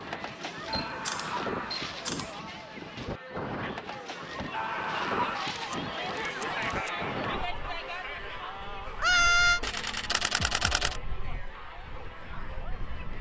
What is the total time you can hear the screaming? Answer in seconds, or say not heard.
3 s.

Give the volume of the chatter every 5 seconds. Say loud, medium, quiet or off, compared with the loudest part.
medium, loud, medium.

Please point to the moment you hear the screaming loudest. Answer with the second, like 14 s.
9 s.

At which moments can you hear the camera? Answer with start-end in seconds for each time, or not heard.
0.7-2.4, 5.5-6.9, 9.6-11.0.